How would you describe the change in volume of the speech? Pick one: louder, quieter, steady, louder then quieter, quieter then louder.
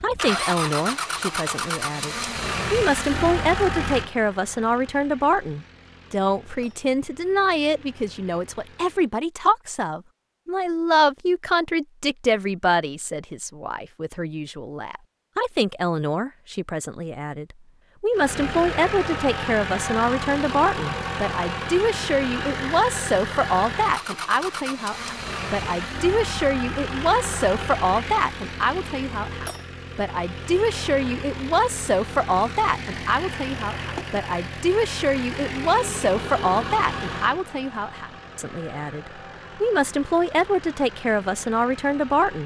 steady.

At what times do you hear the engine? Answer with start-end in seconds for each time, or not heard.
0.0-9.2, 18.1-42.4.